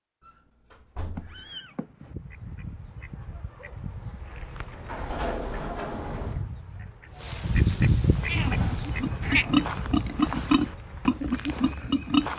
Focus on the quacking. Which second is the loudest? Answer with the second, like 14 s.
8 s.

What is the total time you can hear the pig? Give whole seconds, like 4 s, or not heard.
4 s.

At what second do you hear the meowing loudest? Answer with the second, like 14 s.
9 s.